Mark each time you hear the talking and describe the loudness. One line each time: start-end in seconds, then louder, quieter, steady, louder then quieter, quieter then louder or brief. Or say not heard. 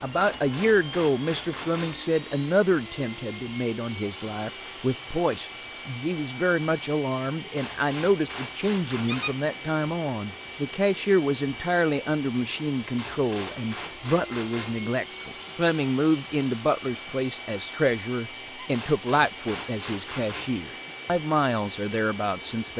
0.0-22.7 steady.